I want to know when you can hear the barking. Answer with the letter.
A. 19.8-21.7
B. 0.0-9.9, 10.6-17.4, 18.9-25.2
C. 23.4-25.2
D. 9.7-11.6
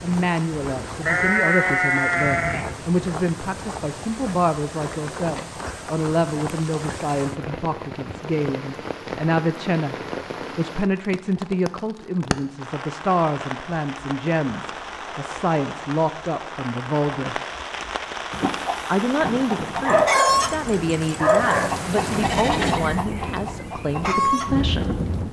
A.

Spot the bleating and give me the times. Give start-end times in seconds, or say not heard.
1.0-2.7, 21.4-22.9.